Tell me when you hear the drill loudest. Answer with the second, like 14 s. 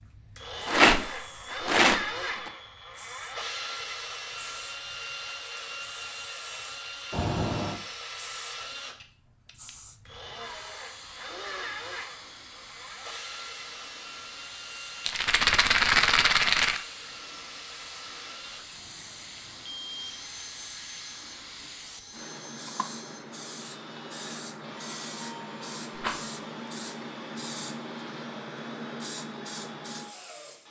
2 s.